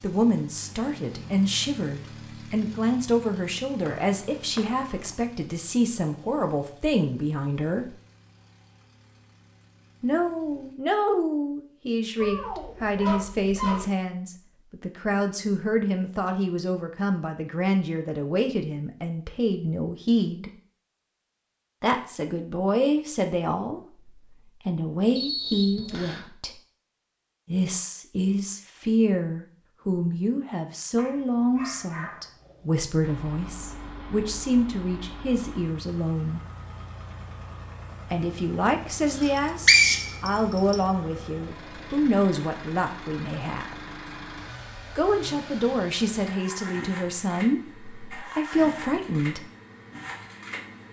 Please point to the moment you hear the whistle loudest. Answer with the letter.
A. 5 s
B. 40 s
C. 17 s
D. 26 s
B.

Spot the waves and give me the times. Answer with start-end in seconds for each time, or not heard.
not heard.